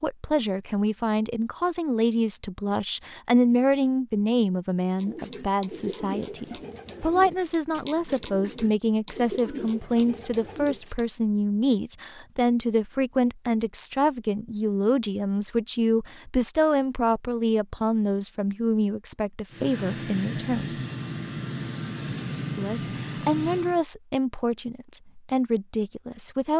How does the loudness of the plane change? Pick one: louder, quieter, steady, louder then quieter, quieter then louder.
steady.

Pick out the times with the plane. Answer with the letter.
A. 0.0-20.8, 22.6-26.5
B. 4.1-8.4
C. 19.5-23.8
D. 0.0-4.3
C.